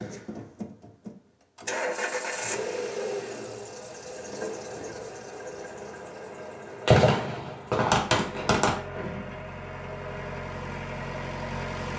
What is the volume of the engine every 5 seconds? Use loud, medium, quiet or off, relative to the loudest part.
loud, medium, loud.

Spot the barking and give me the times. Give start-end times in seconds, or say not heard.
not heard.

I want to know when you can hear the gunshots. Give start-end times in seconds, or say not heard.
6.8-8.8.